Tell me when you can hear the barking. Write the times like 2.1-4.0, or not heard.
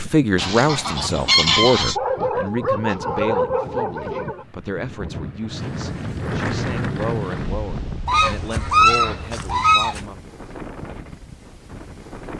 1.9-4.5.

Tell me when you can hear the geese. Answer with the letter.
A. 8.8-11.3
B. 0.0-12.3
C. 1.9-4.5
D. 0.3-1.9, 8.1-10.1
D.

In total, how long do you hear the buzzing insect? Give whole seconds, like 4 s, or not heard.
not heard.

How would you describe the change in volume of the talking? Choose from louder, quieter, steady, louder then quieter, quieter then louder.
quieter.